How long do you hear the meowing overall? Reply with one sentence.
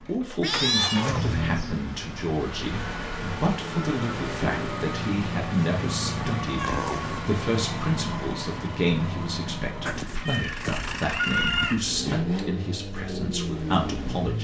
You can hear the meowing for 4 seconds altogether.